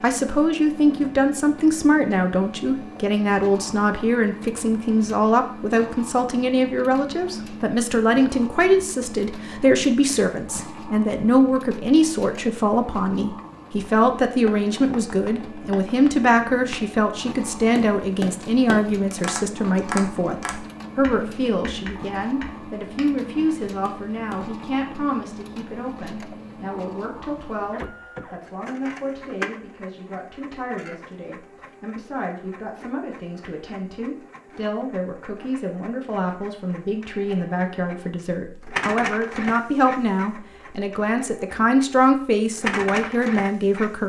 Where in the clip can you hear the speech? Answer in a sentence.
You can hear the speech from 0.0 to 44.0 s.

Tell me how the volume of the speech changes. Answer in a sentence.
The loudness of the speech goes down, then up.